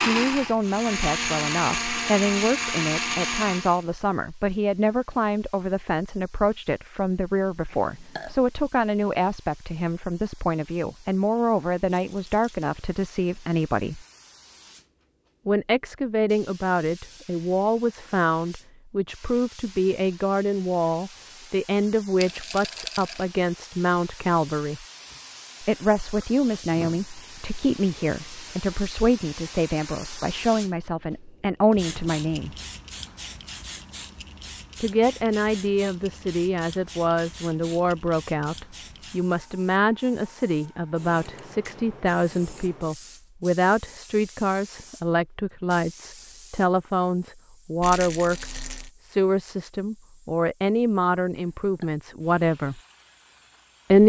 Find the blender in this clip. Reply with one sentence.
You can hear the blender from 0.0 to 3.9 s.